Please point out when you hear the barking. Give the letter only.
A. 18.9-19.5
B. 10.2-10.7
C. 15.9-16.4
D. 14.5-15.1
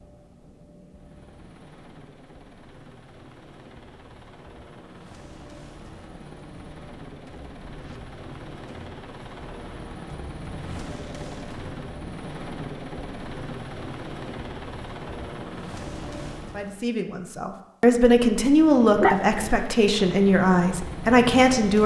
A.